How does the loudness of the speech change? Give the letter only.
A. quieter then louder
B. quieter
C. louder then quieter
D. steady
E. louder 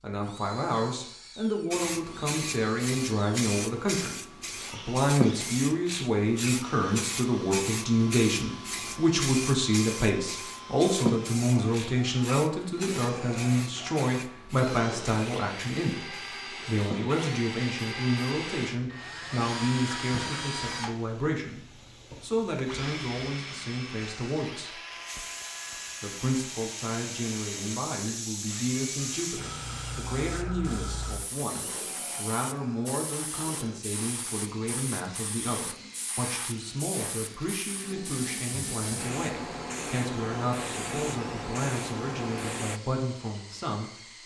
B.